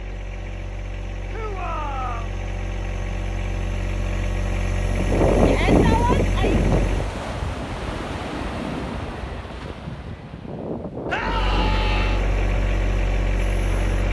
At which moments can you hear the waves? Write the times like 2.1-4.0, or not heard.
4.8-14.0.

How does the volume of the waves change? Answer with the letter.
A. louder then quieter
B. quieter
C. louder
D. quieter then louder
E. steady
B.